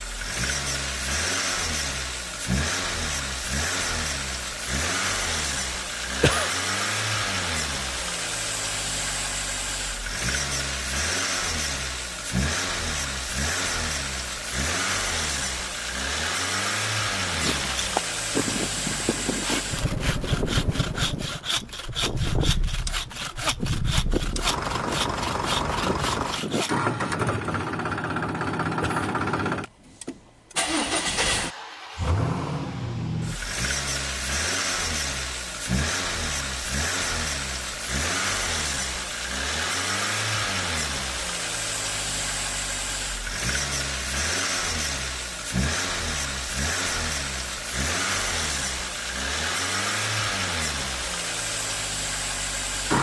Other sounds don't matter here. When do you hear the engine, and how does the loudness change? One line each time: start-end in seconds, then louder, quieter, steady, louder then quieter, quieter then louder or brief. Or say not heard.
0.0-52.9 steady.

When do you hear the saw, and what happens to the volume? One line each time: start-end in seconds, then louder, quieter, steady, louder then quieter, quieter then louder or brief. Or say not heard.
17.3-26.8 steady.